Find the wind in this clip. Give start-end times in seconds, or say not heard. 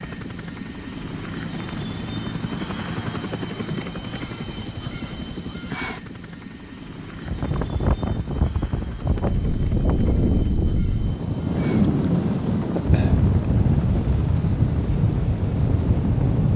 7.1-16.5.